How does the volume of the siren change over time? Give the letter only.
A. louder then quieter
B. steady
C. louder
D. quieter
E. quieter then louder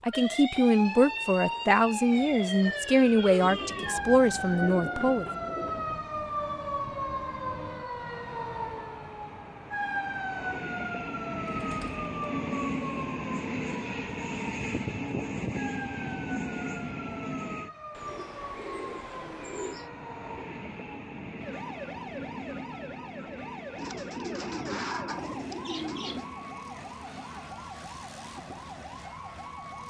D.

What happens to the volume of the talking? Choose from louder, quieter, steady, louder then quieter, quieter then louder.
steady.